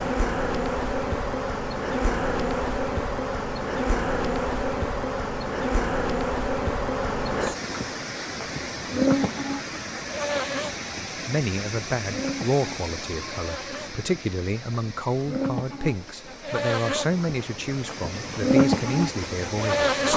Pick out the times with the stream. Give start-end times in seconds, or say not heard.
7.5-20.1.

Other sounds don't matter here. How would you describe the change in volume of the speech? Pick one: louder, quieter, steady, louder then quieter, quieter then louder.
steady.